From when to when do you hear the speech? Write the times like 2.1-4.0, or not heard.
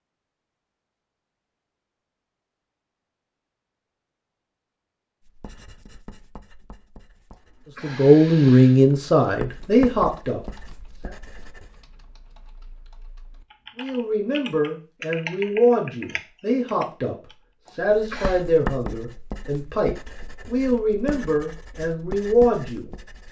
7.8-11.2, 13.8-22.9.